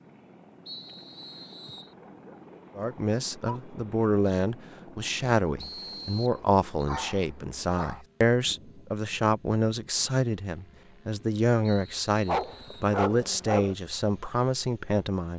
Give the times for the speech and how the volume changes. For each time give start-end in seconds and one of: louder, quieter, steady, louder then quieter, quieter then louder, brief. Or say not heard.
2.8-15.3 steady.